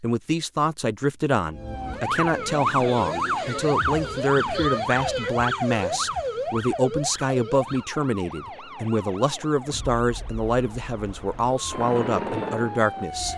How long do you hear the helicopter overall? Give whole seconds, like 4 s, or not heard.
2 s.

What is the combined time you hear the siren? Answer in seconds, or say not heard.
12 s.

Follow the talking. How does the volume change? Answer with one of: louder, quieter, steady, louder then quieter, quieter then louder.
steady.